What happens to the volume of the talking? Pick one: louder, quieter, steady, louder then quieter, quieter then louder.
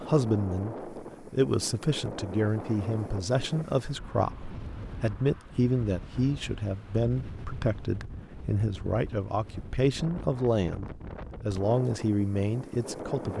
steady.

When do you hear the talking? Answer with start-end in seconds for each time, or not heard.
0.0-13.3.